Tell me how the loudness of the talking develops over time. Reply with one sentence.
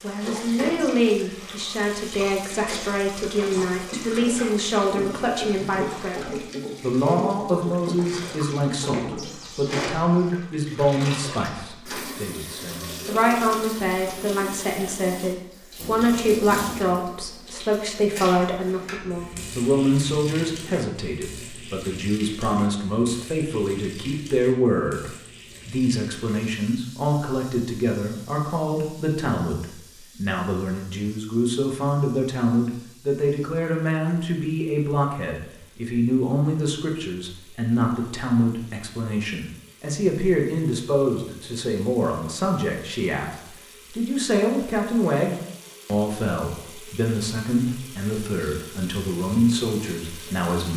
The loudness of the talking stays about the same.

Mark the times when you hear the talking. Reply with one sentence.
The talking can be heard from 0.0 to 50.7 s.